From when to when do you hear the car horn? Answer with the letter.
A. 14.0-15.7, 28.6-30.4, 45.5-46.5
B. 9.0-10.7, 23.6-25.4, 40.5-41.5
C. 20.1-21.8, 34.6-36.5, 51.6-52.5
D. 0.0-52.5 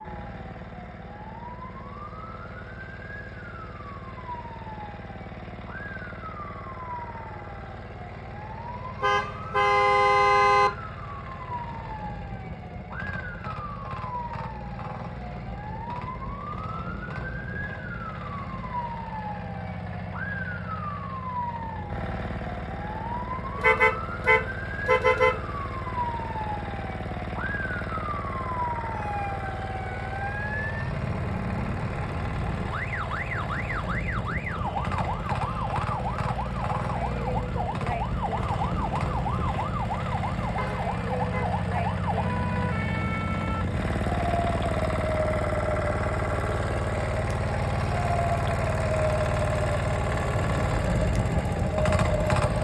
B.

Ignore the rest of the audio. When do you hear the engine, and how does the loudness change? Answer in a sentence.
The engine can be heard from 0.0 to 52.5 s, getting louder.